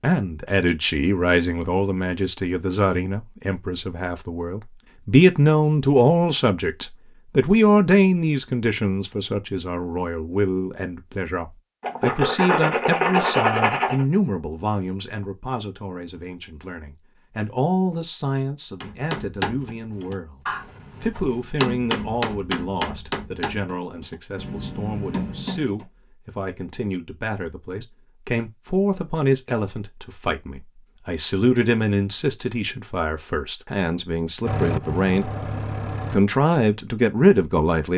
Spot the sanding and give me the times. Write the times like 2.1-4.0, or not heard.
11.8-14.1.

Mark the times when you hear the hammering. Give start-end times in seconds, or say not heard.
18.8-25.9.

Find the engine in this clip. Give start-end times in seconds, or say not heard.
34.5-36.2.